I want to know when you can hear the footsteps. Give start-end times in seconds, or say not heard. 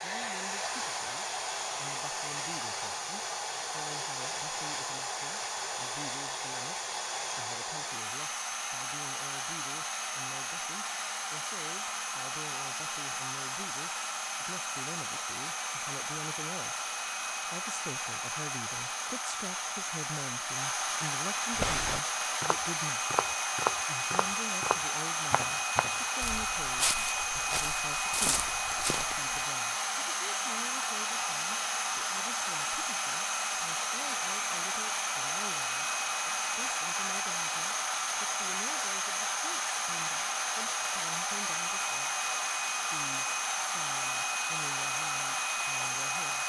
21.6-29.4.